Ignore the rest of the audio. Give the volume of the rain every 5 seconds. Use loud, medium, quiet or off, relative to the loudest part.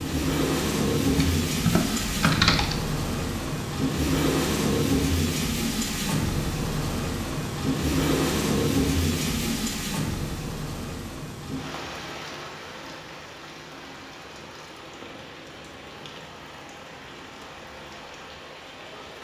loud, loud, medium, quiet.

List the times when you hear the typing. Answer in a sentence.
The typing can be heard from 1.1 to 2.8 s.